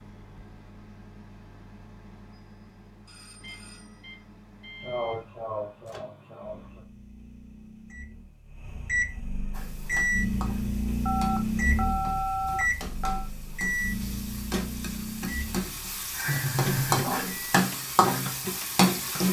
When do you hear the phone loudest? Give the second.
12 s.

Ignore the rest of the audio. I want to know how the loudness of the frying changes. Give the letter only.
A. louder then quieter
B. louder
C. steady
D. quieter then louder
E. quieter
B.